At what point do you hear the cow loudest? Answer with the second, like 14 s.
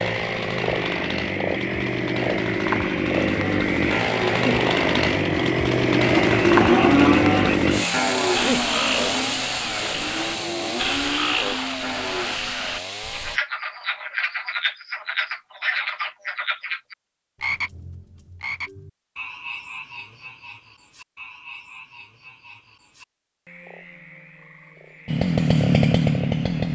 7 s.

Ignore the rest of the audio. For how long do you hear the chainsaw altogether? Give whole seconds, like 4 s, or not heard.
15 s.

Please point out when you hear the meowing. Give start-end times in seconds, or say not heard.
not heard.